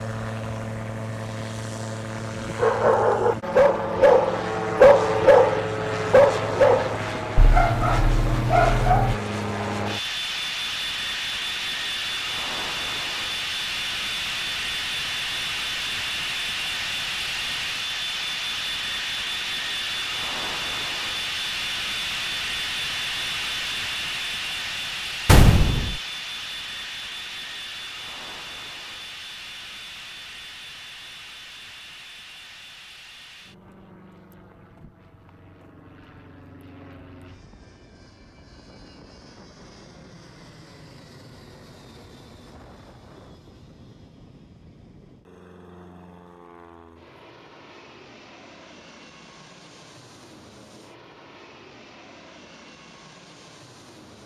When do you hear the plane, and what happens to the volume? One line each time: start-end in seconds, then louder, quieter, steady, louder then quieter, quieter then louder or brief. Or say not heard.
0.0-54.2 quieter.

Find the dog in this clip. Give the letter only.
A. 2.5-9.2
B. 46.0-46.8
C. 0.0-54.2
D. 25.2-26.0
A.